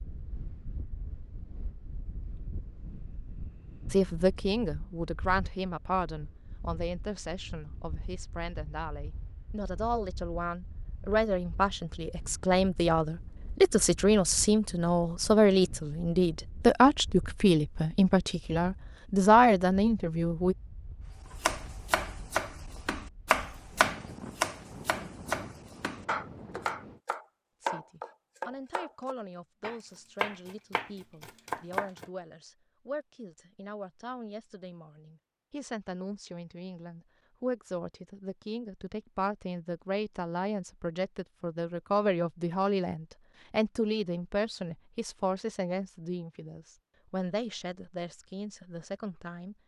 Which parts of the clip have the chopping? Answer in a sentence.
The chopping can be heard from 21.4 to 32.0 s.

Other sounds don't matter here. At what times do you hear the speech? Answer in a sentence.
You can hear the speech from 3.9 to 20.6 s and from 27.6 to 49.5 s.